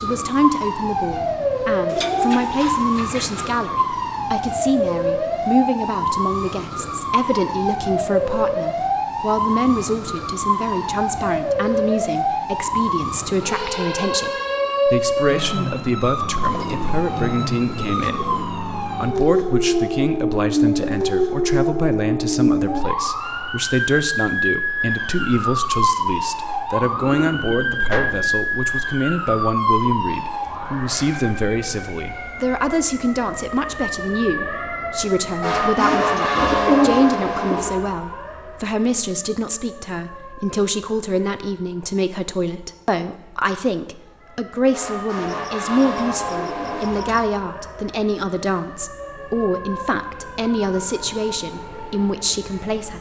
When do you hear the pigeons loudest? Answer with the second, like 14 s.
37 s.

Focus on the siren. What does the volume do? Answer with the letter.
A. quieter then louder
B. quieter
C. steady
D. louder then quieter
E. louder
B.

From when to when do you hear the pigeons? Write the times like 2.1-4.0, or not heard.
1.9-3.6, 16.4-18.5, 26.8-28.4, 35.8-37.8, 45.2-47.2.